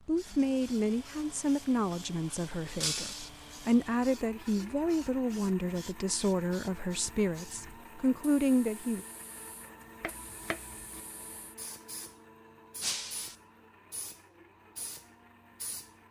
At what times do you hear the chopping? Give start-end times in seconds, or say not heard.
10.0-11.0.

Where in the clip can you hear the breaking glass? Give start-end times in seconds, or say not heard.
2.8-3.3, 12.8-13.3.